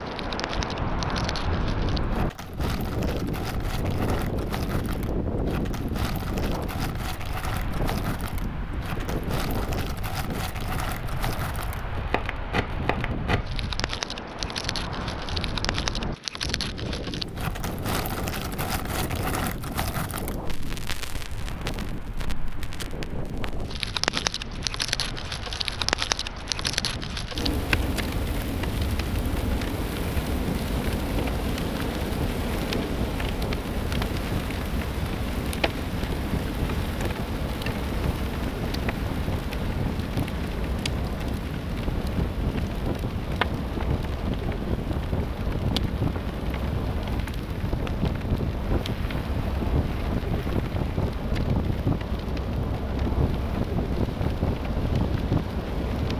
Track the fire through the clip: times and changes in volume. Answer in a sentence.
You can hear the fire from 0.0 to 56.1 s, getting louder then quieter.